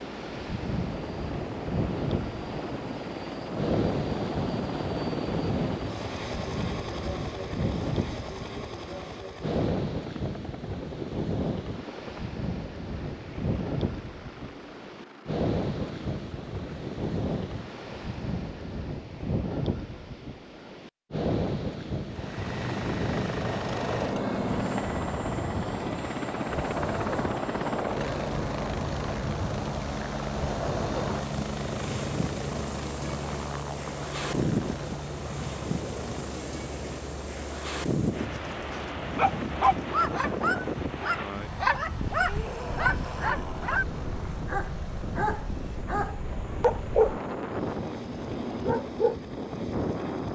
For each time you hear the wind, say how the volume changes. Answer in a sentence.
The wind can be heard from 0.0 to 50.3 s, at a steady volume.